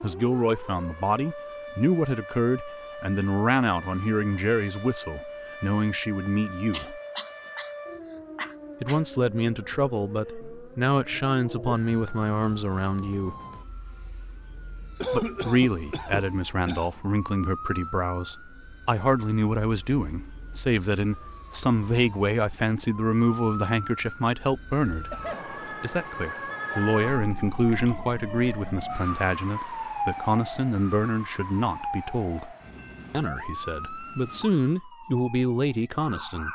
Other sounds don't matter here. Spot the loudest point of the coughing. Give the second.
15 s.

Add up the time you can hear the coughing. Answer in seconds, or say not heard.
4 s.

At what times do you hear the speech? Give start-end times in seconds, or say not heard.
0.0-7.0, 8.8-13.3, 15.1-25.1, 25.8-36.4.